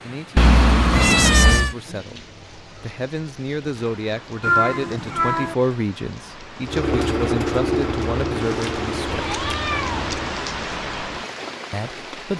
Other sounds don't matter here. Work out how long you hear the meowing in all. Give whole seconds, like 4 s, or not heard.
4 s.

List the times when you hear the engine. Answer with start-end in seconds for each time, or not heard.
6.6-10.2.